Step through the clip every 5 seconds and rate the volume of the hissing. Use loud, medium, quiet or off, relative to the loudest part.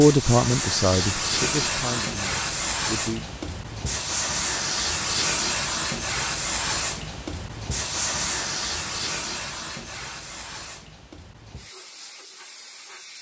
loud, loud, quiet.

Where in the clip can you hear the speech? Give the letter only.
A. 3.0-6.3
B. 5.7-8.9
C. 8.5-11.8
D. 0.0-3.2
D.